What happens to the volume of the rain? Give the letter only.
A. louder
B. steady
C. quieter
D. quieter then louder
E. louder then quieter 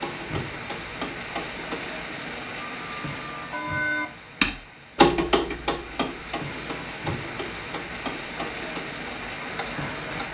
D.